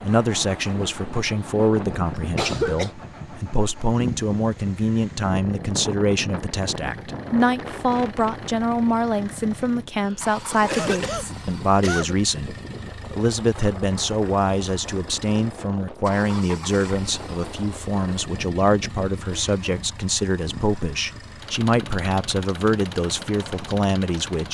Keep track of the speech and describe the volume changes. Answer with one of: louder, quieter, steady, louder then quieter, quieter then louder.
steady.